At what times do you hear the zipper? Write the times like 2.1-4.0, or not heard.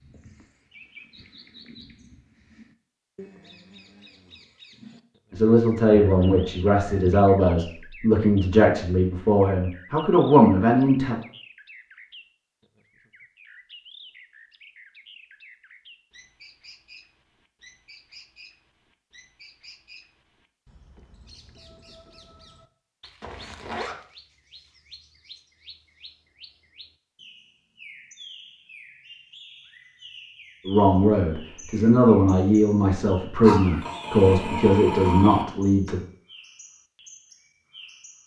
23.2-23.9.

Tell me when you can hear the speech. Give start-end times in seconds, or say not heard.
5.3-11.2, 30.6-36.0.